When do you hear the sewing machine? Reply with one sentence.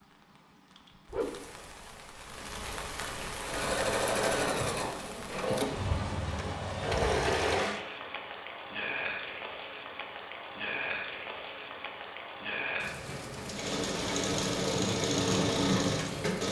The sewing machine can be heard from 3.4 to 7.8 s and from 13.4 to 16.4 s.